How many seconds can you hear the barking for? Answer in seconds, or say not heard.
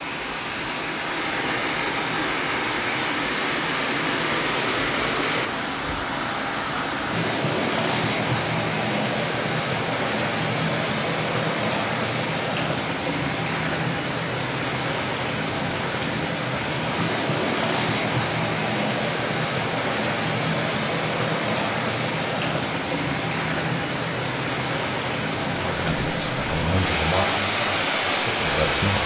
not heard.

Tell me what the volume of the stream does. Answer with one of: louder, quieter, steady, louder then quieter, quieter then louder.
steady.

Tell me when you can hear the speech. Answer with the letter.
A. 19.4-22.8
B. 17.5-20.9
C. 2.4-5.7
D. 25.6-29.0
D.